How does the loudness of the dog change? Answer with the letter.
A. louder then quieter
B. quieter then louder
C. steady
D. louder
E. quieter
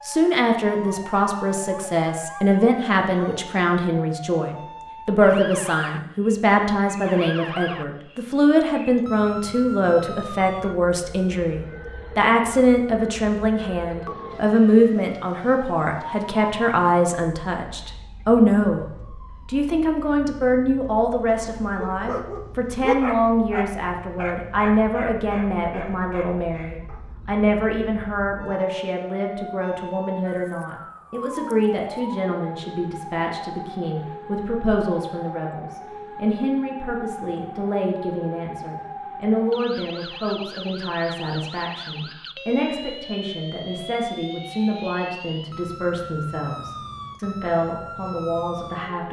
A.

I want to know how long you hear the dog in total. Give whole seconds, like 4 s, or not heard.
6 s.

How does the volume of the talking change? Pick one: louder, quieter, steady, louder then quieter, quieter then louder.
quieter.